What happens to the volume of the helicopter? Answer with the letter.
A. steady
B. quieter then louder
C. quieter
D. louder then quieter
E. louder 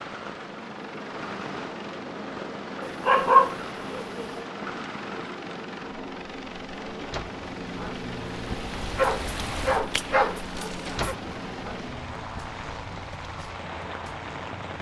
A.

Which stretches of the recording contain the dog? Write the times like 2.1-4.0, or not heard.
2.8-4.5, 8.9-11.2.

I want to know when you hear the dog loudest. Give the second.
3 s.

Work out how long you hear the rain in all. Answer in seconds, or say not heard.
15 s.